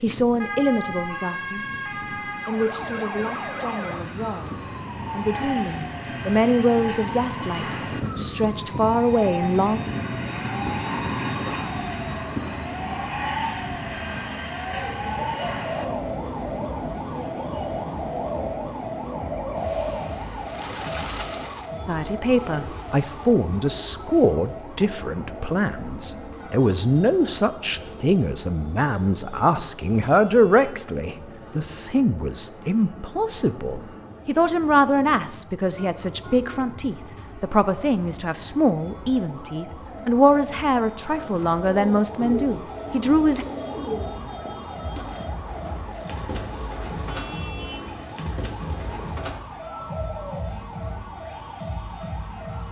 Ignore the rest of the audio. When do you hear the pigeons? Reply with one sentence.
You can hear the pigeons from 14.7 to 24.4 s and from 41.1 to 50.8 s.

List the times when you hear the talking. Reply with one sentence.
You can hear the talking from 0.0 to 1.8 s, from 2.5 to 9.8 s and from 21.9 to 43.5 s.